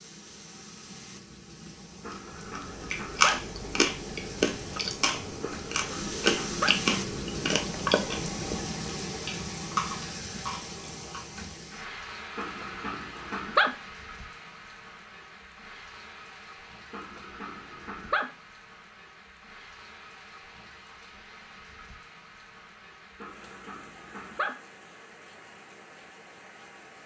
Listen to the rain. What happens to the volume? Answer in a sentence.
The volume of the rain goes up, then down.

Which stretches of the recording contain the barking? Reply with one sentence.
The barking can be heard from 2.0 to 3.4 s, from 5.4 to 6.8 s, from 12.3 to 13.8 s, from 16.9 to 18.3 s and from 23.2 to 24.6 s.